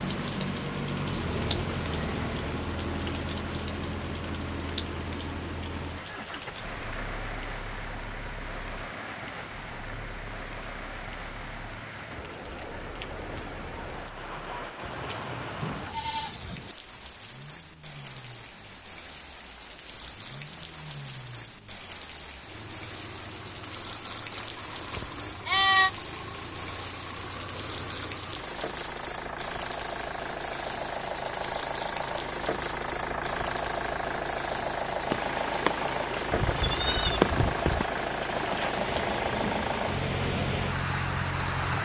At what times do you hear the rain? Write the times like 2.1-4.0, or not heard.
0.0-41.8.